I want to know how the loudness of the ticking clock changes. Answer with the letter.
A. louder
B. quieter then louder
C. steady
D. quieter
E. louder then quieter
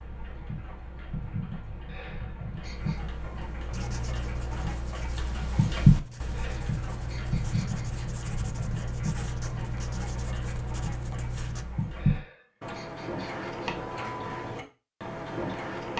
E.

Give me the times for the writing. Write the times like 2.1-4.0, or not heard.
3.7-11.7.